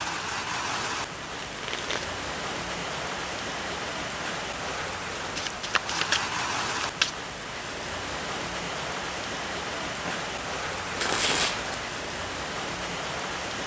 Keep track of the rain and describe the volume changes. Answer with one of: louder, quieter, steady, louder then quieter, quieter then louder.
steady.